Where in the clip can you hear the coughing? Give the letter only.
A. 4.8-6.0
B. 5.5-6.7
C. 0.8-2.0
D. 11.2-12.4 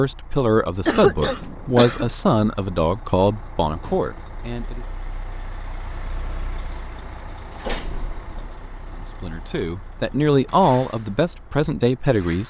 C.